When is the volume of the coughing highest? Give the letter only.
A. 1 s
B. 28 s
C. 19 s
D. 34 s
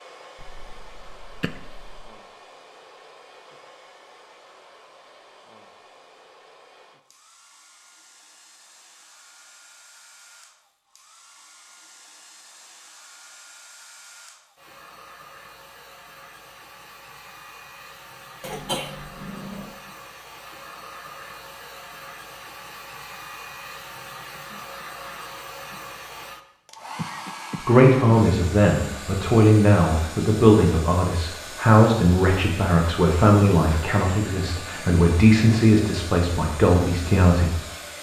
C.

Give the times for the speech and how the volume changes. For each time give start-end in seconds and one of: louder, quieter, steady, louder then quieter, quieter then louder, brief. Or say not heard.
27.6-37.5 steady.